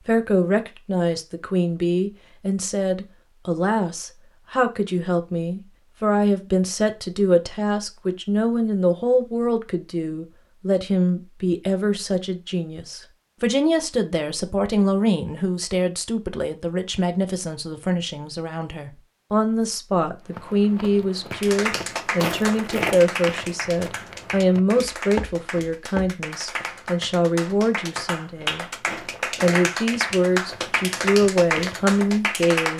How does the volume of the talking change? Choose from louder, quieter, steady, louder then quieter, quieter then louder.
steady.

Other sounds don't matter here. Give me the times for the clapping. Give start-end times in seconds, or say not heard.
21.3-32.7.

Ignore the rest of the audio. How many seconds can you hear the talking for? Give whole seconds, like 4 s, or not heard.
32 s.